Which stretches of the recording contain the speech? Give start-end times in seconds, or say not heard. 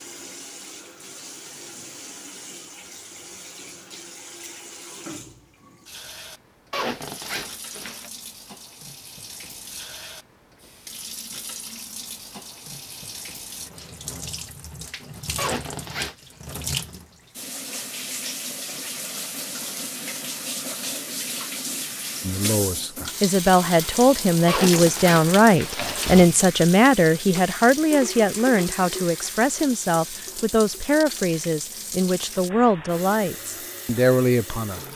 22.2-34.8.